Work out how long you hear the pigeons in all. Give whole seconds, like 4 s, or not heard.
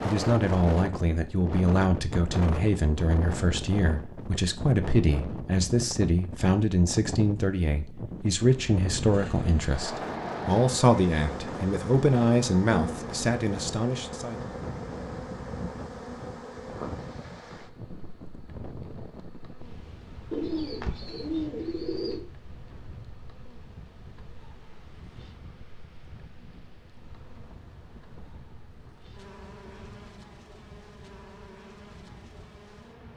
2 s.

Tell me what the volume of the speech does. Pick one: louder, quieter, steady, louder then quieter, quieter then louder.
steady.